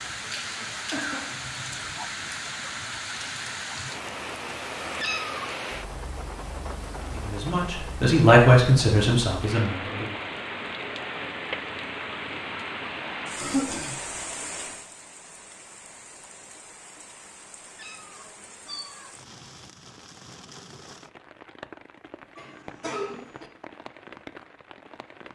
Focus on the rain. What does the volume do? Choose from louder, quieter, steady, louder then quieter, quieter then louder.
quieter.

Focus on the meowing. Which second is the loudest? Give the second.
5 s.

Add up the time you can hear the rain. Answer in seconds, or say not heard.
25 s.